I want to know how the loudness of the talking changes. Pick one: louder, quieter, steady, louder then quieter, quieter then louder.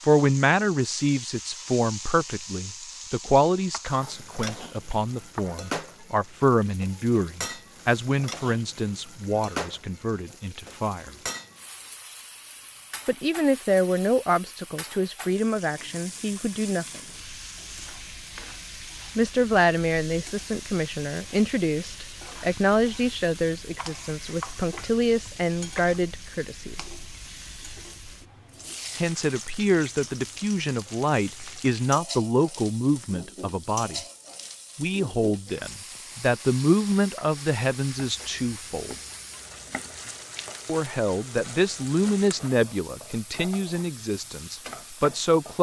steady.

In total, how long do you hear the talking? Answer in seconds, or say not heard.
37 s.